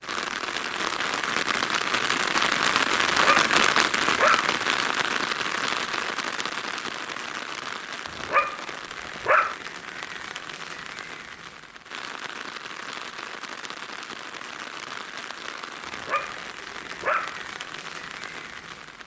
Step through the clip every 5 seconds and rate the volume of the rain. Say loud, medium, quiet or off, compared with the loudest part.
loud, medium, quiet, quiet.